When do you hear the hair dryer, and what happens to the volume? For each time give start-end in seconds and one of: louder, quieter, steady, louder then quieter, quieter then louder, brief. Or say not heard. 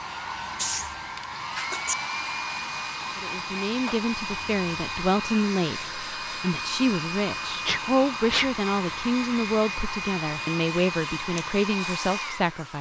0.0-12.7 steady.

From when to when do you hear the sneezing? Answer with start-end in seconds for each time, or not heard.
0.6-1.9, 7.7-8.5.